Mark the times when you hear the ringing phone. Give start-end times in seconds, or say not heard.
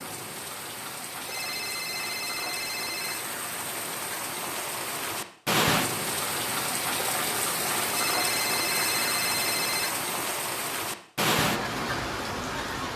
1.2-3.2, 7.9-9.9.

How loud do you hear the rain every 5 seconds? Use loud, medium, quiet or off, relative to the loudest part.
medium, loud, loud.